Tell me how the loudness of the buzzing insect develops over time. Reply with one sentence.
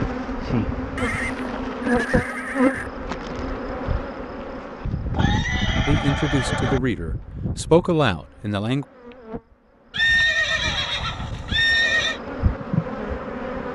The loudness of the buzzing insect goes down, then up.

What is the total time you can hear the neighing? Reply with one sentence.
You can hear the neighing for 6 seconds altogether.